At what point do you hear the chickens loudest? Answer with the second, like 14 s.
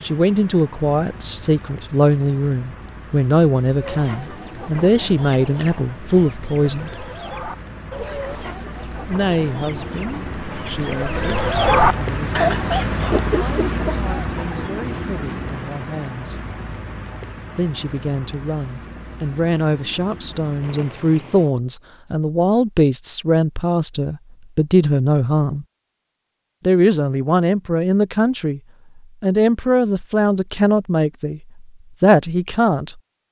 12 s.